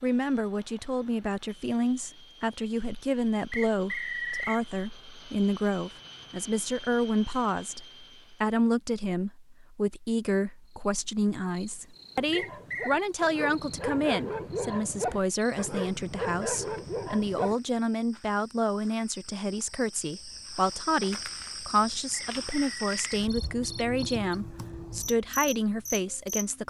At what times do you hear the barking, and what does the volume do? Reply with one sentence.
You can hear the barking from 12.2 to 17.6 s, getting louder.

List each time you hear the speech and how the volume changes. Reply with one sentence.
The speech can be heard from 0.0 to 26.6 s, at a steady volume.